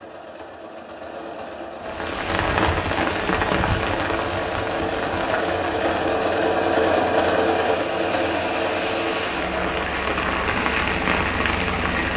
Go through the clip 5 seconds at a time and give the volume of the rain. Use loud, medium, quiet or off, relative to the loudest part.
loud, medium, loud.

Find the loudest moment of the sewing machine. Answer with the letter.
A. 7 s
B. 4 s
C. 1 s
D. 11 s
A.